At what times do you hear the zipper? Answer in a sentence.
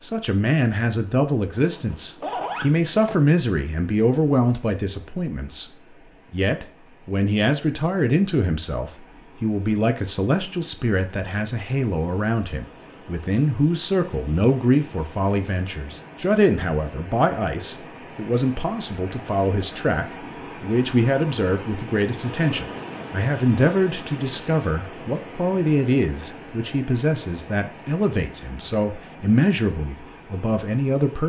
You can hear the zipper from 1.6 to 3.1 s.